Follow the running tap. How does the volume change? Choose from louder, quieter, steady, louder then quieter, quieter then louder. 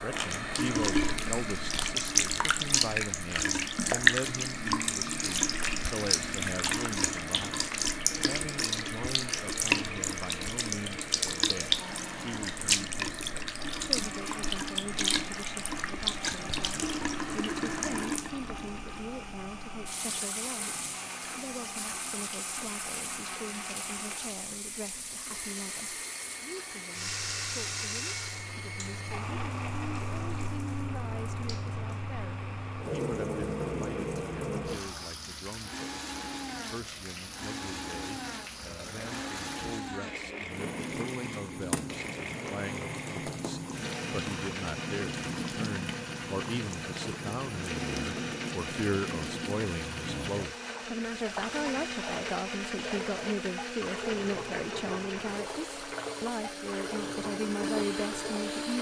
quieter.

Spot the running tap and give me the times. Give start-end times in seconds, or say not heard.
0.0-58.7.